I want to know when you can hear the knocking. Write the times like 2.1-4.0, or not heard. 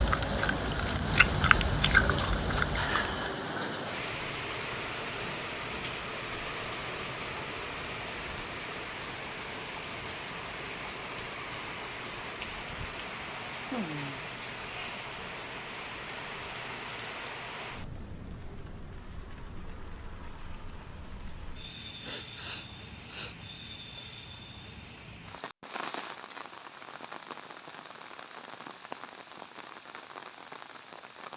not heard.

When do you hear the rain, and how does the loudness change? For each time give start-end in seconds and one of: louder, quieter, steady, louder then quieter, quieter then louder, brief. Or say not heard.
0.0-31.3 quieter.